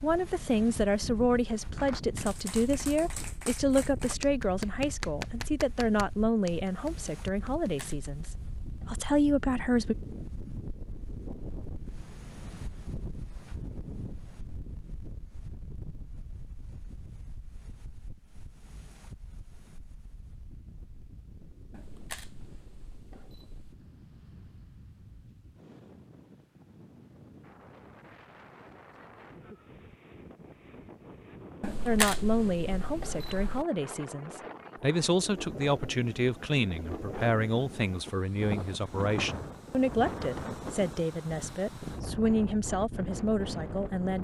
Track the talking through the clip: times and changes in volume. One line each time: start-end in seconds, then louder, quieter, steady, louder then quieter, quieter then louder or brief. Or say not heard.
0.0-9.9 steady
31.9-44.1 steady.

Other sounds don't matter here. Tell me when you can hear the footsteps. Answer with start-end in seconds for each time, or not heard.
not heard.